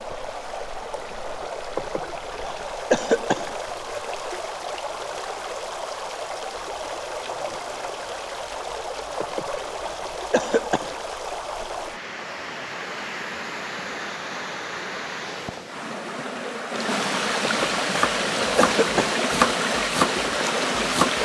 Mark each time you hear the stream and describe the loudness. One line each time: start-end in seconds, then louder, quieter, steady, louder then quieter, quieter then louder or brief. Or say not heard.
0.0-21.2 louder.